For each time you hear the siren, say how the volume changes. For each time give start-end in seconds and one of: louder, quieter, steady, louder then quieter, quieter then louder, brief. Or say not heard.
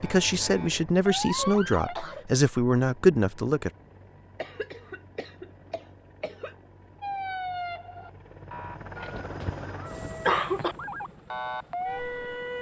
0.0-1.9 brief
7.0-12.5 quieter then louder.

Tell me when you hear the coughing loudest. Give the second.
10 s.